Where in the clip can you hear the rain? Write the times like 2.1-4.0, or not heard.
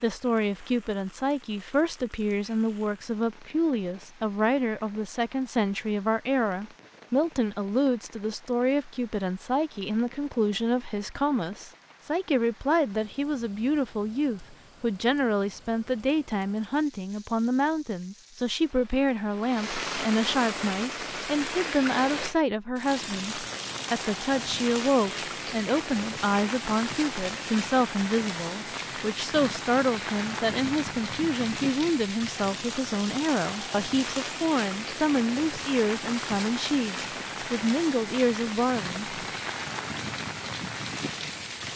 0.0-41.7.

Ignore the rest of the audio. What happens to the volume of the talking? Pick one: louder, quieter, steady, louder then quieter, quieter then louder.
steady.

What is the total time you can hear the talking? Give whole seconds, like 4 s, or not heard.
39 s.